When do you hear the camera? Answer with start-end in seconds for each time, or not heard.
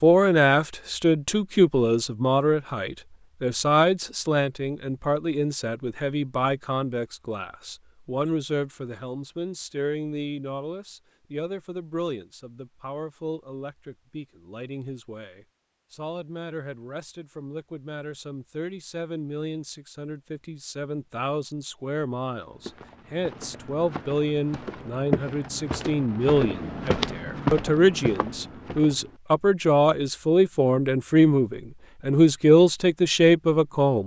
not heard.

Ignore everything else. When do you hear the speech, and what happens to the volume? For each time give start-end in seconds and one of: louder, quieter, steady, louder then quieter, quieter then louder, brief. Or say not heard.
0.0-34.0 quieter then louder.